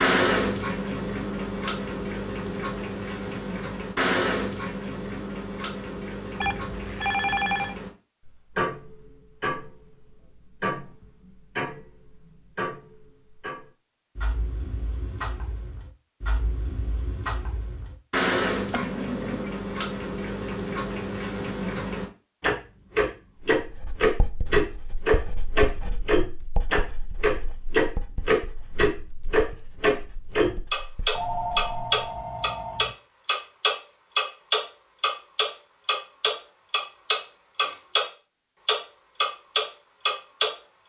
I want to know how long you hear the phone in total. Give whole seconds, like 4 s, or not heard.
4 s.